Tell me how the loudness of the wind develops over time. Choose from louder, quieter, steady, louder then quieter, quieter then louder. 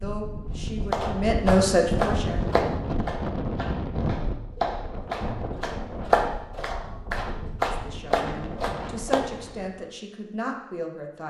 quieter.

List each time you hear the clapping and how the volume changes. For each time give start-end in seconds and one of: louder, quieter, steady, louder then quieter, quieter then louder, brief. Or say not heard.
0.9-9.3 quieter then louder.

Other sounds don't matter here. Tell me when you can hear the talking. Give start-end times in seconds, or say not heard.
0.0-2.5, 7.7-11.2.